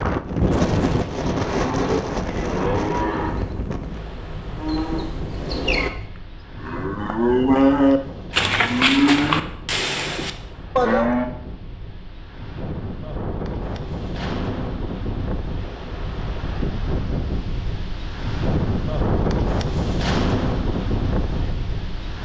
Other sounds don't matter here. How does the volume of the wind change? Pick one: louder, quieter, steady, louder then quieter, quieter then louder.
quieter then louder.